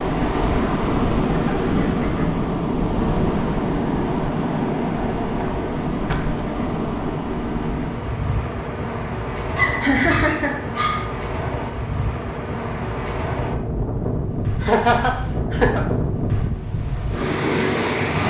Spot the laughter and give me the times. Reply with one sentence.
The laughter can be heard from 1.3 to 2.4 s, from 9.8 to 10.6 s and from 14.6 to 15.8 s.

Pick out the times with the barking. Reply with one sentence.
You can hear the barking from 9.6 to 11.1 s.